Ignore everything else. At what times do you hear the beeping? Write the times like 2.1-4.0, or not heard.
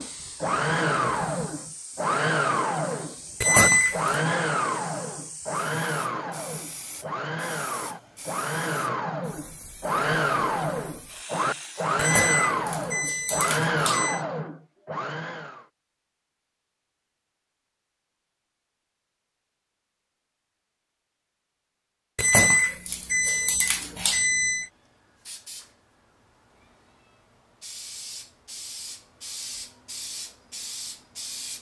3.4-4.2, 11.9-14.2, 22.1-24.6.